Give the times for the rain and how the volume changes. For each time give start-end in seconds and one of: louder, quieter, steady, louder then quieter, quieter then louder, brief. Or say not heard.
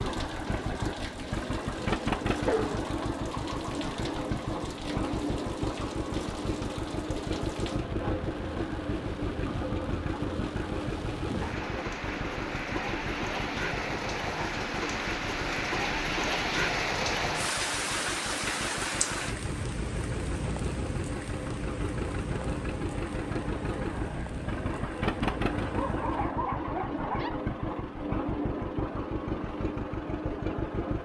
0.0-26.4 louder then quieter.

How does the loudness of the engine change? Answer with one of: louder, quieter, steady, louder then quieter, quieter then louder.
quieter then louder.